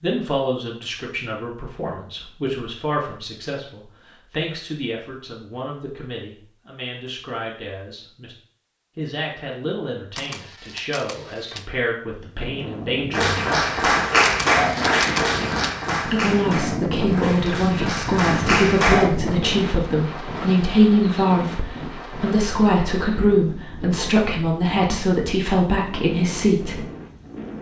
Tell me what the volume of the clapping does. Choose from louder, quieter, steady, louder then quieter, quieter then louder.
quieter then louder.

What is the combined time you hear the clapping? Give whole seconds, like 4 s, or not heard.
6 s.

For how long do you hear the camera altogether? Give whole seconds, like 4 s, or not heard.
3 s.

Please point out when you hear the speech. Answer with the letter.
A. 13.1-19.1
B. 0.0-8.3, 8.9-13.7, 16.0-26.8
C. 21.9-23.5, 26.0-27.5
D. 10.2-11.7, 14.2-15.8
B.